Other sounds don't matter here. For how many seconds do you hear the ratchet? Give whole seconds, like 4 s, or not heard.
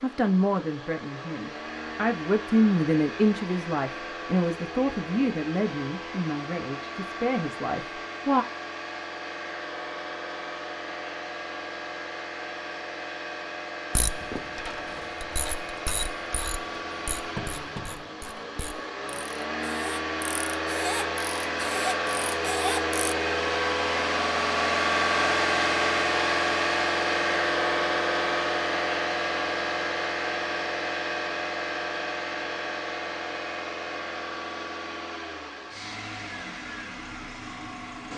9 s.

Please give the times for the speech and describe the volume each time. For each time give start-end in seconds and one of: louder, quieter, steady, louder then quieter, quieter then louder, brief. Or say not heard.
0.0-8.4 louder then quieter.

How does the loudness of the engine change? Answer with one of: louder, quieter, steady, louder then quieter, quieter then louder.
louder then quieter.